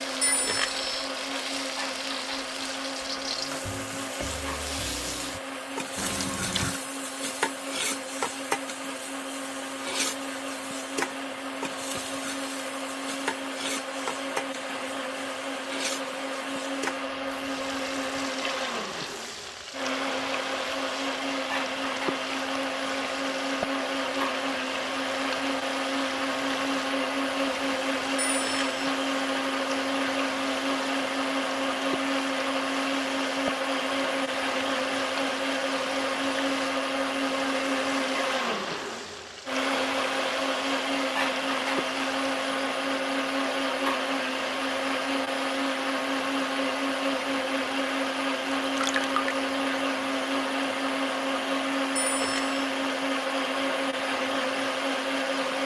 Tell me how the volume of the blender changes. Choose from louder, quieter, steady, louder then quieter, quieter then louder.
louder.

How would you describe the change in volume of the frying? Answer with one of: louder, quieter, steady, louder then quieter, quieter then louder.
quieter.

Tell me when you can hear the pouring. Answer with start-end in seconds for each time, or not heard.
6.0-6.8, 48.6-49.4.